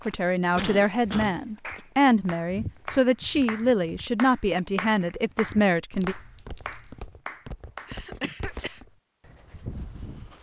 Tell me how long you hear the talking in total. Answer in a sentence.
You can hear the talking for 6 seconds altogether.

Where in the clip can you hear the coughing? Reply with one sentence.
You can hear the coughing from 0.1 to 1.8 s and from 7.8 to 8.8 s.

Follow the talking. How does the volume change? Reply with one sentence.
The volume of the talking stays about the same.